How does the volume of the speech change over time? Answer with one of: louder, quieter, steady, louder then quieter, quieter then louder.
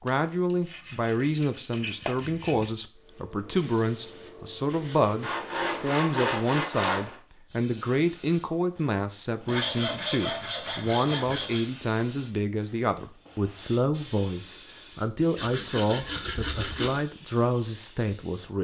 steady.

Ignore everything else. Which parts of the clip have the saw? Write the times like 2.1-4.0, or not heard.
0.1-2.7, 5.2-7.2, 9.4-11.7, 15.3-17.0.